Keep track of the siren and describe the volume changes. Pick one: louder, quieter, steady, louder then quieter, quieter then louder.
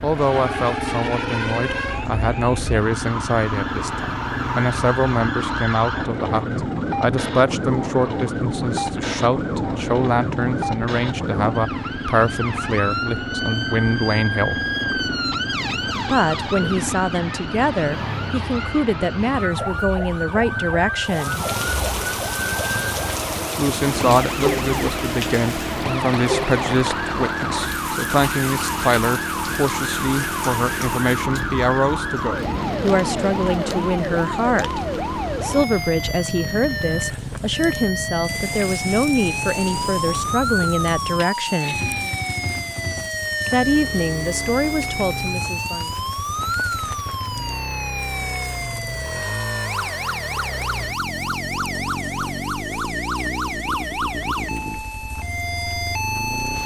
steady.